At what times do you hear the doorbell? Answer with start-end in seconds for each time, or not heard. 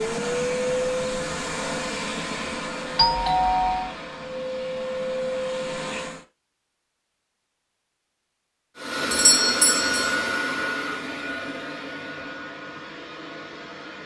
3.0-4.0, 9.1-10.2.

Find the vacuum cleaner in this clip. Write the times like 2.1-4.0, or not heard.
0.0-6.2, 8.8-14.0.